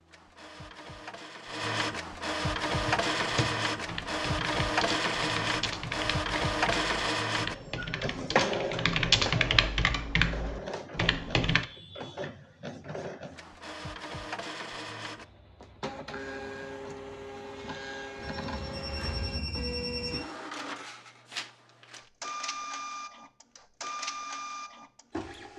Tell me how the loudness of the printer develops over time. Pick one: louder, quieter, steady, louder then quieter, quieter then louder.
quieter.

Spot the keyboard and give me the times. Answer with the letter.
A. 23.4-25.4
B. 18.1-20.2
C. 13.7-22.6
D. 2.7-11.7
D.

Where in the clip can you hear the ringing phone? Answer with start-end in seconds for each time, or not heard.
18.1-20.2.